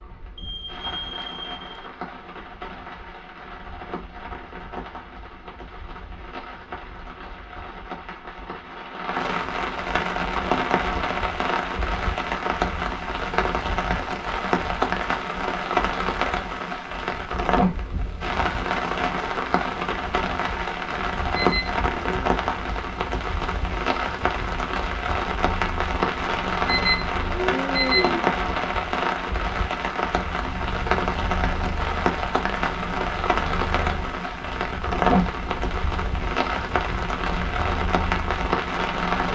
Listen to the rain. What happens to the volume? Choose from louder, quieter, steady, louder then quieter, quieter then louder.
louder.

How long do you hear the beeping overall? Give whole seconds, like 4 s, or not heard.
4 s.